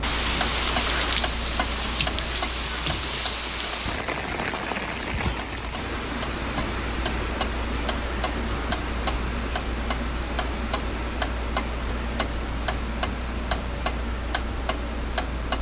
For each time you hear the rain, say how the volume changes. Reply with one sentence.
You can hear the rain from 0.0 to 15.5 s, getting quieter.